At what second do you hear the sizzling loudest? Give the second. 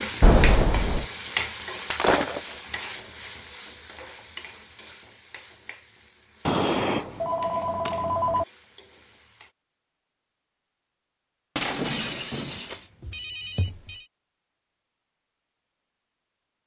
1 s.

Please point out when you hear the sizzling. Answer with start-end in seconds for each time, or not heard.
0.0-9.6.